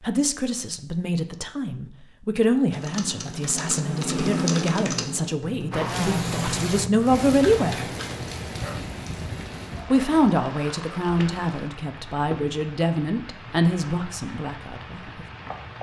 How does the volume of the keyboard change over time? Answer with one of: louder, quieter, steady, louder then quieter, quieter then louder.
louder then quieter.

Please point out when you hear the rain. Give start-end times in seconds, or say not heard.
5.7-15.7.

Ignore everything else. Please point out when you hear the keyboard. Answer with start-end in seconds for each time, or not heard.
2.6-8.3.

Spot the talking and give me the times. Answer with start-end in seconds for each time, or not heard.
0.0-7.8, 9.9-15.2.